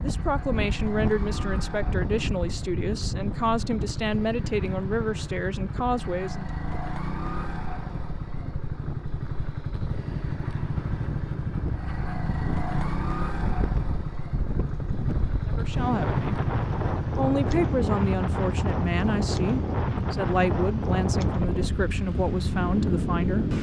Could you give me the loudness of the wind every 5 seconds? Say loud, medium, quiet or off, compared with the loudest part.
medium, quiet, medium, loud, loud.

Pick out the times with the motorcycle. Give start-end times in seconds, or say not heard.
0.0-23.5.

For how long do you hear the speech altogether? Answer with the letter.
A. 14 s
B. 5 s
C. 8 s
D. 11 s
A.